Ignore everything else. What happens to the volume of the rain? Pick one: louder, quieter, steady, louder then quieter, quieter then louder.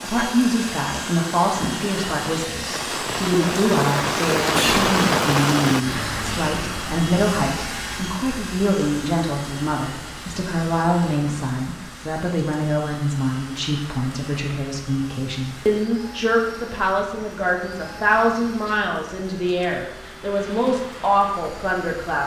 quieter.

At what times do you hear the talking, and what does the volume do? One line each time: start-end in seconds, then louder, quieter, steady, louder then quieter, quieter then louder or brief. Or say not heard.
0.0-22.2 steady.